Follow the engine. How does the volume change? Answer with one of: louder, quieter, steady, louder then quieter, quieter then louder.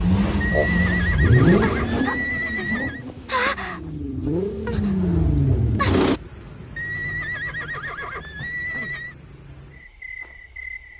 quieter then louder.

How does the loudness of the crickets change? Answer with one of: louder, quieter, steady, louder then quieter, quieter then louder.
quieter.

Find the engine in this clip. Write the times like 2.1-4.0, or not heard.
0.0-6.2.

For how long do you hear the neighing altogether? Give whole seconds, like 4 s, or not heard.
5 s.